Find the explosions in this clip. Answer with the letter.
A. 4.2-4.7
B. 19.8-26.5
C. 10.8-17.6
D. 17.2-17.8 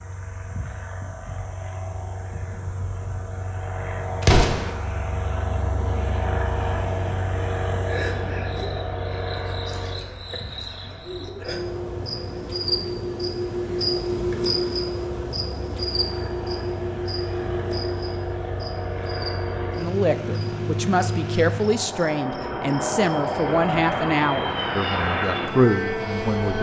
A.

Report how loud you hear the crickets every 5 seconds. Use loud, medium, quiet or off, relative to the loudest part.
quiet, medium, loud, loud, medium, medium.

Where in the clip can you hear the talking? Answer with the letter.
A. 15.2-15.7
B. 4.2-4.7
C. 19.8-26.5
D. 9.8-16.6
C.